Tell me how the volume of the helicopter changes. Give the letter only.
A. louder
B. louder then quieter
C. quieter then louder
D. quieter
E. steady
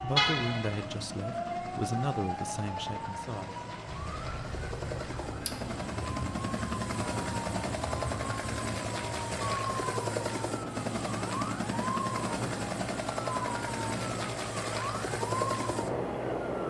A.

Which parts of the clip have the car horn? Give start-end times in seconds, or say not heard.
0.1-0.8.